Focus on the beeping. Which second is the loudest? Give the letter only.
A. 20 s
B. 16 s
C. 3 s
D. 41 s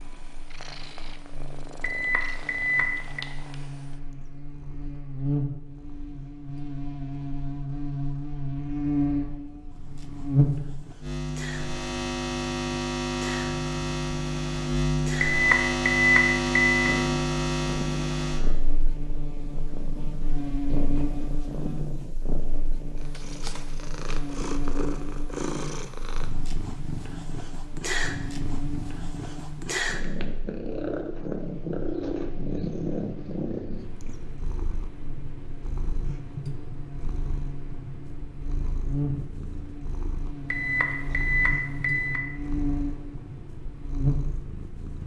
B.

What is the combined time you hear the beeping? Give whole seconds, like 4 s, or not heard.
5 s.